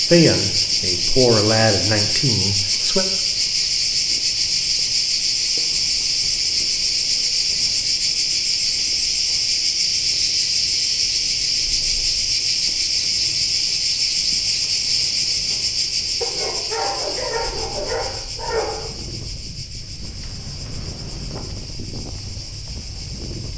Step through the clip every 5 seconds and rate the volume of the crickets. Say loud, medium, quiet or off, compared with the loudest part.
loud, loud, loud, medium, quiet.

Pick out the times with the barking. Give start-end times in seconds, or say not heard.
16.2-18.9.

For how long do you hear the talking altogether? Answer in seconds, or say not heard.
3 s.